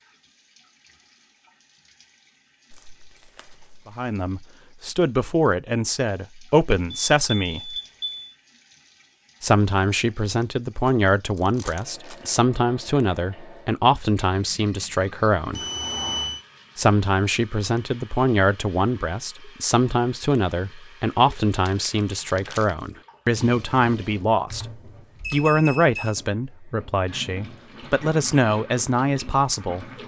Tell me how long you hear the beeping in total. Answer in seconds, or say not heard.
4 s.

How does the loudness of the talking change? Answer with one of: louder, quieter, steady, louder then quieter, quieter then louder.
steady.